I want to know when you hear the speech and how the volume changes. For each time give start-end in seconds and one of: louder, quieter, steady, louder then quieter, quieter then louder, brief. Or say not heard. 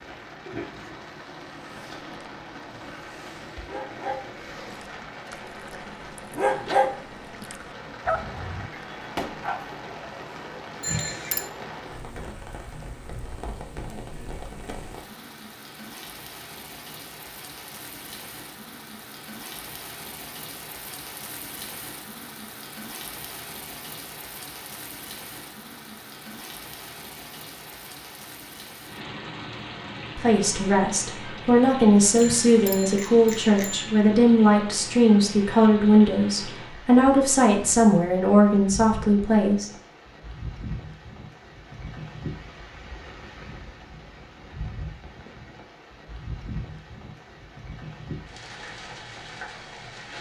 30.1-39.7 steady.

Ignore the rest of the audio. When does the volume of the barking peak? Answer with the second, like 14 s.
7 s.